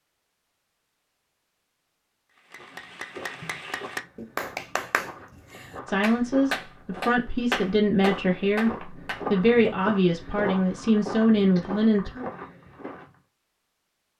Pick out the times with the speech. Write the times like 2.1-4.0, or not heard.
5.8-12.1.